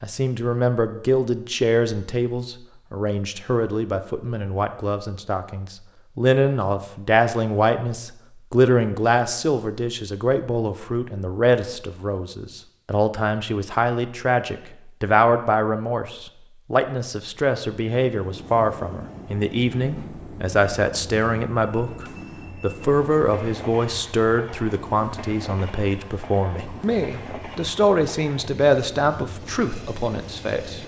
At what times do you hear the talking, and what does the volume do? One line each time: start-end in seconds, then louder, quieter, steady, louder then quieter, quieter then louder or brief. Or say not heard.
0.0-30.8 steady.